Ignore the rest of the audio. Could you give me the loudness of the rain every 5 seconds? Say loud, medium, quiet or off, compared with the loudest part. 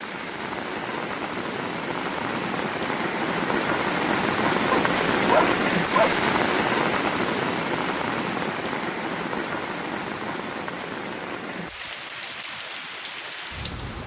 loud, loud, medium.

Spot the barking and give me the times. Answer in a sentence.
The barking can be heard from 4.7 to 6.2 s.